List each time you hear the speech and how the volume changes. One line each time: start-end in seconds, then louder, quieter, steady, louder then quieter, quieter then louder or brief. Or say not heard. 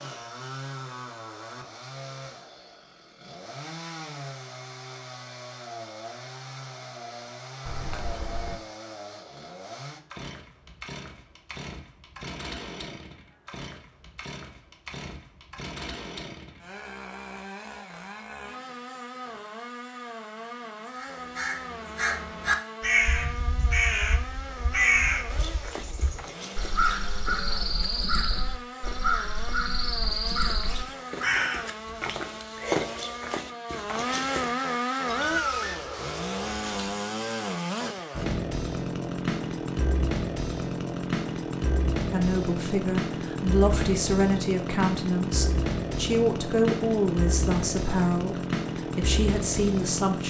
42.1-50.2 steady.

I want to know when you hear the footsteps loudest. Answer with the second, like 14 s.
33 s.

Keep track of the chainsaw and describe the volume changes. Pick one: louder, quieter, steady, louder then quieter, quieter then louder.
louder.